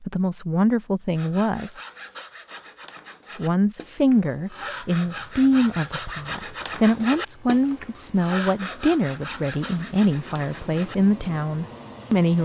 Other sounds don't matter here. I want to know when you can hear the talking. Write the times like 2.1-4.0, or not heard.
0.0-1.8, 3.4-12.4.